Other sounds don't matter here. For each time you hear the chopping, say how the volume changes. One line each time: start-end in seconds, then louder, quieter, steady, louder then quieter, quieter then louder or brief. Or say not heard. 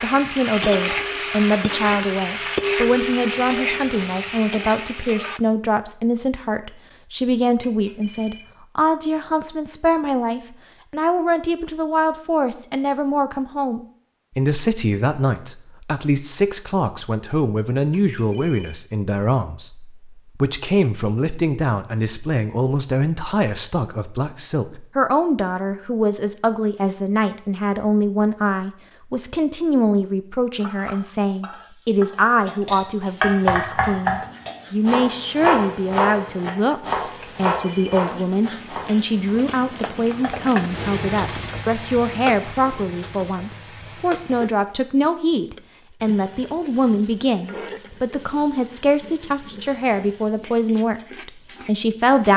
32.5-39.4 quieter.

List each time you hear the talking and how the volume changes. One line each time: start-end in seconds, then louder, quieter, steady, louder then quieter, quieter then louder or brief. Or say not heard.
0.0-52.3 steady.